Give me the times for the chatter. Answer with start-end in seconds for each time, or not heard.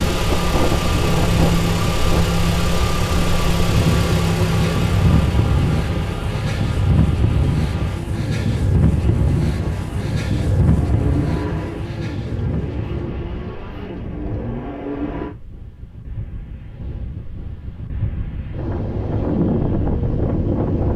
not heard.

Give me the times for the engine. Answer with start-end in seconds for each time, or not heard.
0.0-15.3.